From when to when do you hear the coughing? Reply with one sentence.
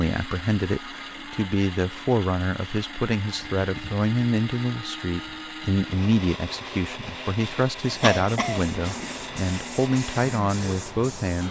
The coughing can be heard from 7.5 to 9.1 s.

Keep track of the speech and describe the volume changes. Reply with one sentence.
The volume of the speech stays about the same.